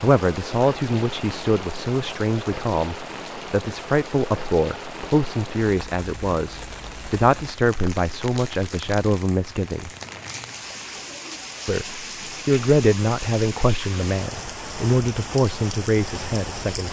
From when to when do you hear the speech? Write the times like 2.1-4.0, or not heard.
0.0-9.9, 11.7-16.8.